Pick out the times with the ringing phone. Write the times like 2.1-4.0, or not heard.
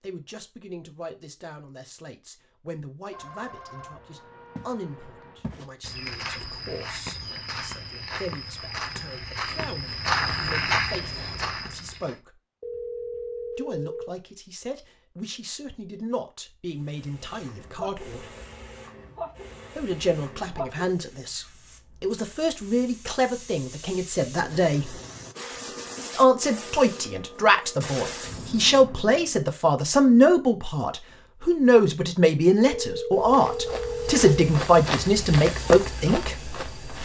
3.1-5.5, 12.6-14.2, 32.6-34.4.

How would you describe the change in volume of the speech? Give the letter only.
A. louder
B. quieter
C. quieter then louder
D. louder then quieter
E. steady
A.